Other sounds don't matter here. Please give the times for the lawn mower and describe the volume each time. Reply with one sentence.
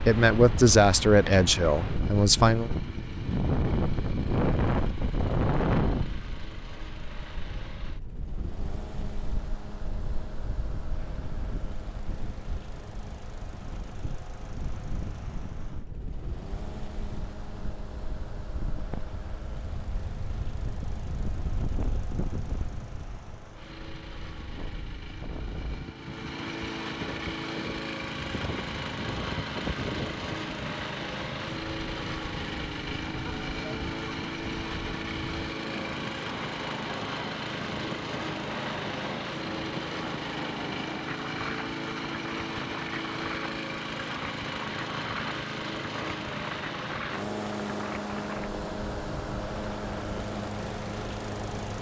You can hear the lawn mower from 0.2 to 51.7 s, getting louder.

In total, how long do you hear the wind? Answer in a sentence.
You can hear the wind for 52 seconds altogether.